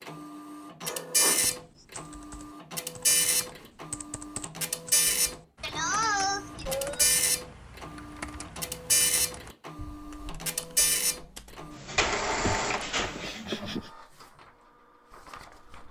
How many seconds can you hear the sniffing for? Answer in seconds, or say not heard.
4 s.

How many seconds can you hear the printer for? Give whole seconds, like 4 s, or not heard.
16 s.